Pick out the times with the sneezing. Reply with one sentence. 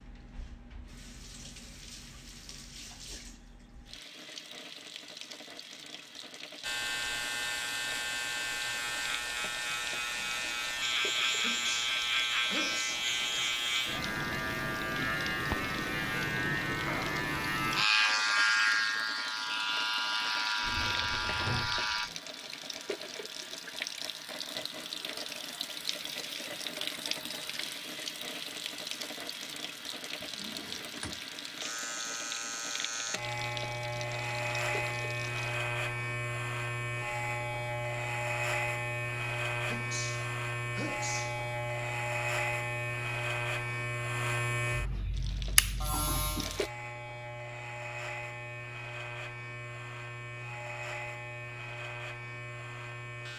You can hear the sneezing from 11.4 to 13.1 s and from 39.6 to 41.5 s.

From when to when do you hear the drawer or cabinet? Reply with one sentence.
The drawer or cabinet can be heard from 20.6 to 22.1 s and from 30.2 to 31.2 s.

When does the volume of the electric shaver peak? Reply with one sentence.
The loudest moment of the electric shaver is at 18 seconds.